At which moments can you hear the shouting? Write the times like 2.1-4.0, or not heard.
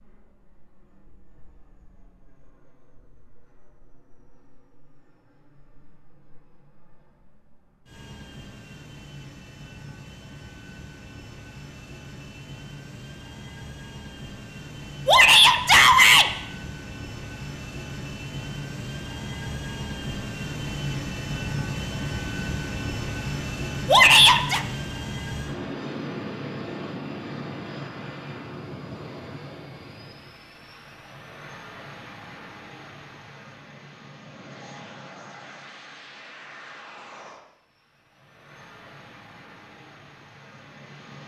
15.1-16.2, 23.9-24.6.